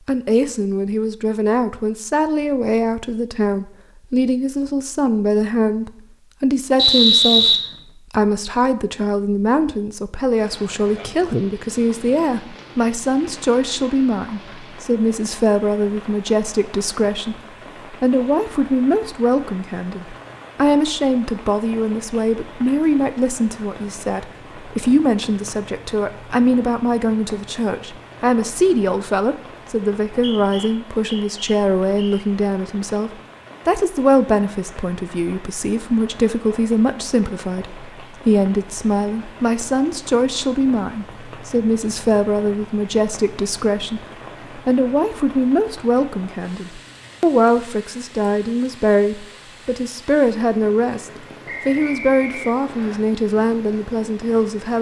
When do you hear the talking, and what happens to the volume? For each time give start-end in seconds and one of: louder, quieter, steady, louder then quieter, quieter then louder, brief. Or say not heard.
0.1-54.7 steady.